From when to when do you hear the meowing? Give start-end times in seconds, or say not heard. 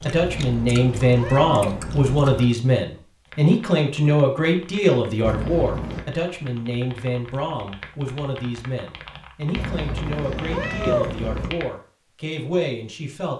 0.2-2.1, 5.2-6.0, 9.6-11.5.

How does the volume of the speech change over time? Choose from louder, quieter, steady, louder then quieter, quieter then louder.
quieter.